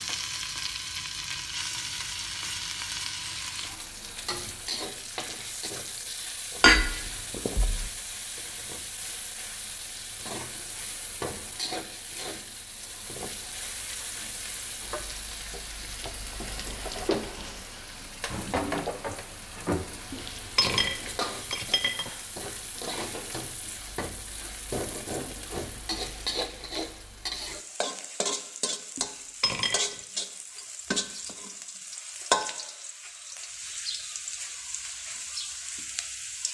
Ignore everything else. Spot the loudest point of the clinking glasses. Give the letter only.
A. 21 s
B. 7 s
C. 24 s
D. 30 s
B.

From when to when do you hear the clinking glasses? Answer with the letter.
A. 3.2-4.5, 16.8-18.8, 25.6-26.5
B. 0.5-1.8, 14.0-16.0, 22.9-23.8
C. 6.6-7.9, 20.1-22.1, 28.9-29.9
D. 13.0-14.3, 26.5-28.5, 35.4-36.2
C.